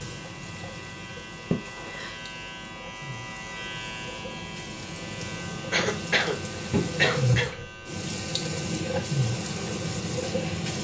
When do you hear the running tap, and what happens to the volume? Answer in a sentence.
The running tap can be heard from 0.0 to 10.7 s, getting louder.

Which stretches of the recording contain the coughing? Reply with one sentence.
The coughing can be heard from 1.5 to 2.1 s and from 5.7 to 7.5 s.